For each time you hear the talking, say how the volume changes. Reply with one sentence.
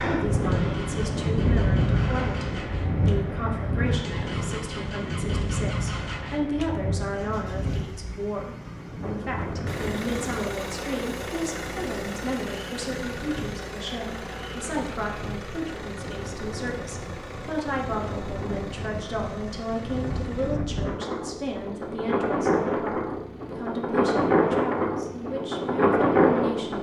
The talking can be heard from 0.0 to 26.7 s, at a steady volume.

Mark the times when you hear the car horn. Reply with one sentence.
The car horn can't be heard in this clip.